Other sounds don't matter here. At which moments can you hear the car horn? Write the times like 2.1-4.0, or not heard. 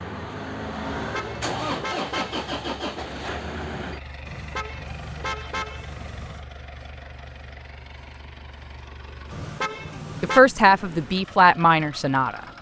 0.8-2.7, 4.2-6.5, 9.3-10.4.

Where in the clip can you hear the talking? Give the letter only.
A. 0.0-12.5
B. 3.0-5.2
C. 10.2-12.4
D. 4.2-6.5
C.